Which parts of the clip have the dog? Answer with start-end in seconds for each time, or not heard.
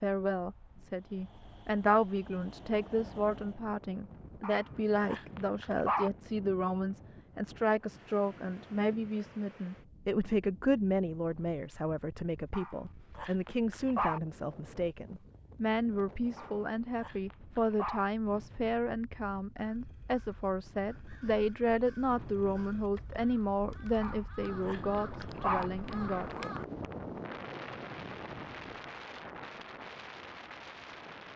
4.4-6.1, 12.5-14.2, 16.4-18.1, 24.0-25.7.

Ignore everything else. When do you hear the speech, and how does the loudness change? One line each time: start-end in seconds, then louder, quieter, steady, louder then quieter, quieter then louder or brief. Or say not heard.
0.0-26.6 steady.